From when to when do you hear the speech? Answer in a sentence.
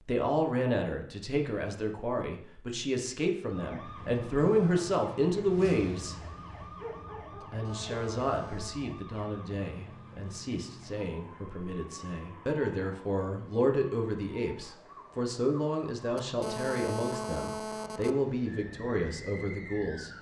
You can hear the speech from 0.0 to 6.2 s and from 7.5 to 20.1 s.